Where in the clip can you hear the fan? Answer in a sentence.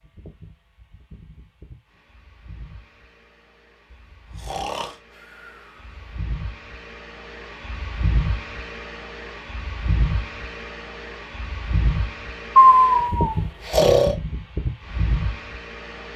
The fan can be heard from 0.0 to 16.1 s.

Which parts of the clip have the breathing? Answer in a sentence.
The breathing can be heard from 4.4 to 5.5 s and from 12.6 to 14.2 s.